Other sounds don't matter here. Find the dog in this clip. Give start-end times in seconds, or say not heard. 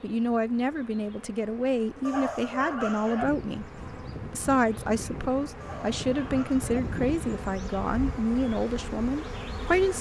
2.0-3.2, 5.6-6.8.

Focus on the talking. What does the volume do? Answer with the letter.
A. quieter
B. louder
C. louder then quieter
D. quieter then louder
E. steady
E.